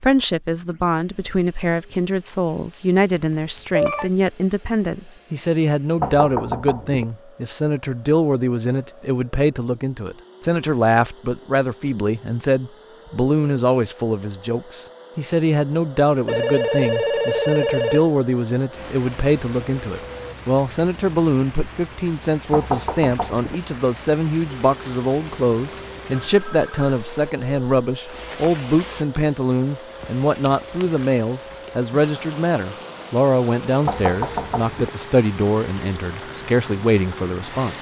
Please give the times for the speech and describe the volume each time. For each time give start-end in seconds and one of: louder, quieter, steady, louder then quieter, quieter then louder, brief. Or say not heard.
0.0-37.7 steady.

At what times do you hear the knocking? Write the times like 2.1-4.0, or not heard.
6.0-7.0, 22.5-23.6, 33.9-34.9.